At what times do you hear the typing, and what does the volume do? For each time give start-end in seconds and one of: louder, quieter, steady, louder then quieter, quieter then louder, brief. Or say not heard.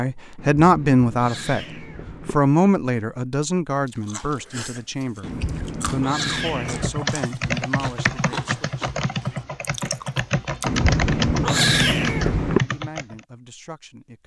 6.5-13.2 steady.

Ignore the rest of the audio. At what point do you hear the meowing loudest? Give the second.
12 s.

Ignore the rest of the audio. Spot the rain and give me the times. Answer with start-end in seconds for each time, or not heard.
not heard.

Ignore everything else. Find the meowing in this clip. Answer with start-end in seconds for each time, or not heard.
0.3-2.4, 5.2-7.0, 10.7-12.7.